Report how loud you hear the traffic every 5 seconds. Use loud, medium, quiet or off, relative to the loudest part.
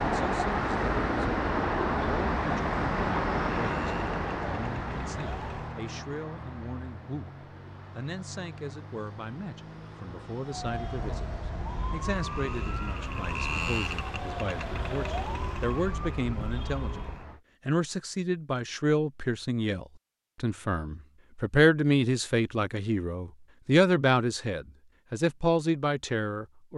loud, quiet, quiet, quiet, off, off.